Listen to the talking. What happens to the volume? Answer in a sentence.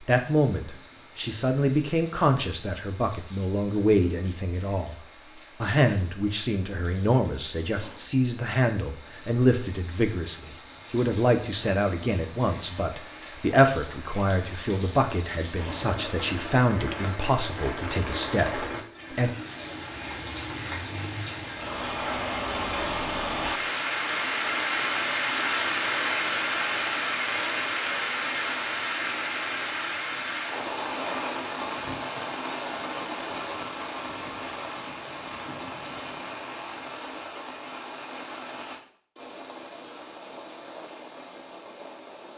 The volume of the talking stays about the same.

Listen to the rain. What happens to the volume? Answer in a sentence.
The loudness of the rain goes up, then down.